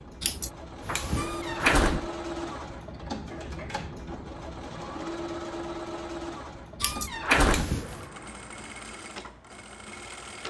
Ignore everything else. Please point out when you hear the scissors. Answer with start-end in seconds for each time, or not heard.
0.2-1.9, 6.8-8.1.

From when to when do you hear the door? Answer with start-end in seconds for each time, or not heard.
1.1-2.1, 6.8-7.8.